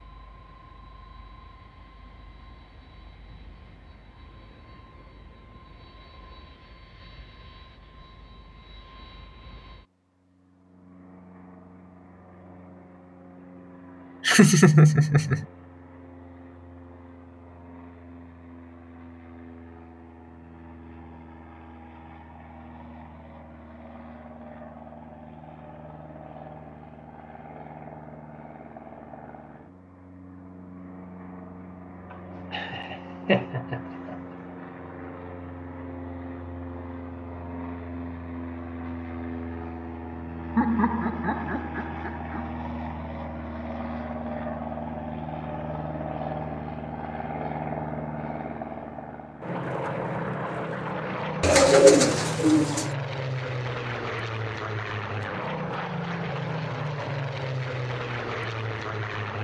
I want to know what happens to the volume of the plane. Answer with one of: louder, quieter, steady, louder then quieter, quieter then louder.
louder.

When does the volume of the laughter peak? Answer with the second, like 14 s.
15 s.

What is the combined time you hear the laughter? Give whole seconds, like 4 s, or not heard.
5 s.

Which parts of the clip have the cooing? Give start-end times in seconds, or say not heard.
51.4-52.9.